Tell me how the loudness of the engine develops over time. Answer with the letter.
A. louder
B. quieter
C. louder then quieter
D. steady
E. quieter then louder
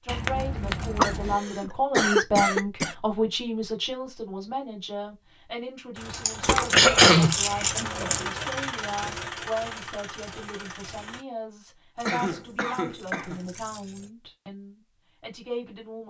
C.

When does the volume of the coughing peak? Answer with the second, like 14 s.
7 s.